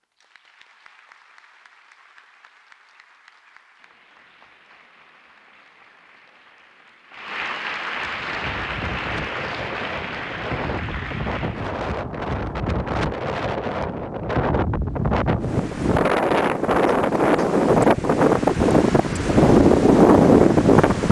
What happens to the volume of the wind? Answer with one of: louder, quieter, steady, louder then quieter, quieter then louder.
louder.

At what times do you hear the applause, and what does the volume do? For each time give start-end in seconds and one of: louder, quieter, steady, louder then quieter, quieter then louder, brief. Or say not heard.
0.0-11.8 louder.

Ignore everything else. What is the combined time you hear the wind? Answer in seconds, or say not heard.
13 s.